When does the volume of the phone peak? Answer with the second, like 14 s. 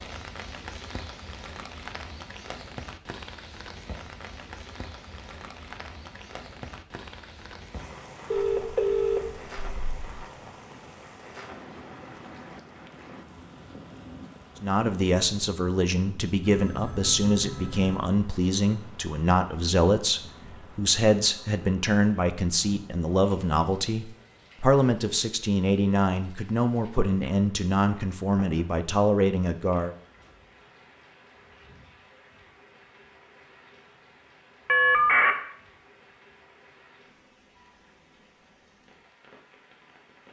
35 s.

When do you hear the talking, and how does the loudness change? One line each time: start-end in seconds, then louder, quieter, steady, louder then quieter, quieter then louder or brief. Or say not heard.
14.6-29.9 steady.